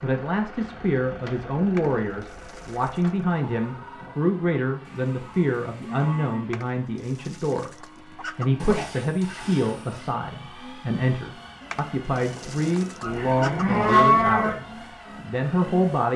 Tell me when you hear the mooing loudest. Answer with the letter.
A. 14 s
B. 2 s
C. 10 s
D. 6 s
A.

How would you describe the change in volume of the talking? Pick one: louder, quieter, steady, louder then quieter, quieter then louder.
steady.